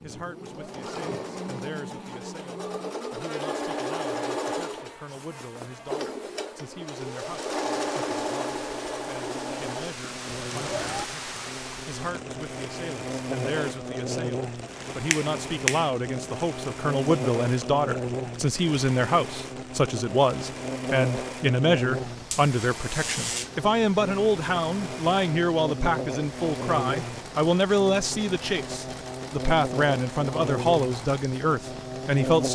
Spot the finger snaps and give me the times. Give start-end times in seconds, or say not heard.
15.1-15.9.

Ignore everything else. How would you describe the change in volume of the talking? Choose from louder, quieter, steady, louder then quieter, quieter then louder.
louder.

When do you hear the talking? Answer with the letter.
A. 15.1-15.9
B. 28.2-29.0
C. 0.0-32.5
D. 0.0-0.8
C.